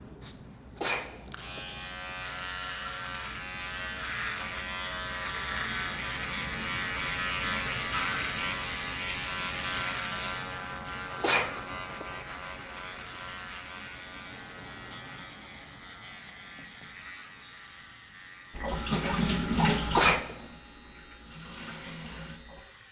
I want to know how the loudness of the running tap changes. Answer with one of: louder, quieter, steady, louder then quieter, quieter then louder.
quieter then louder.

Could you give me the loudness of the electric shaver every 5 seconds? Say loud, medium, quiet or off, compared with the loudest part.
medium, loud, medium, quiet, quiet.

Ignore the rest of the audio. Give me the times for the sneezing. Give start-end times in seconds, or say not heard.
0.8-1.8, 11.2-12.2, 19.9-20.4.